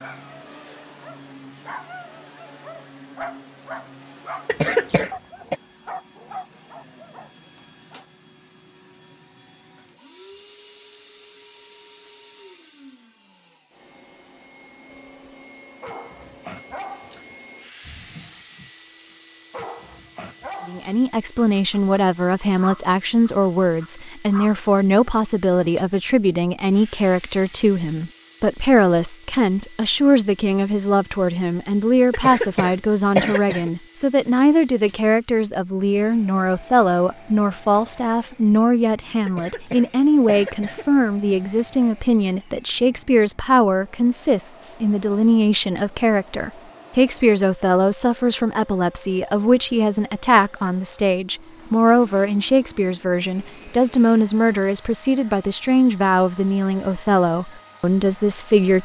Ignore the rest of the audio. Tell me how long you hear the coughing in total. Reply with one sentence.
The coughing can be heard for 4 seconds in total.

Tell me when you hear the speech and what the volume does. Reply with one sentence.
You can hear the speech from 20.6 to 58.7 s, at a steady volume.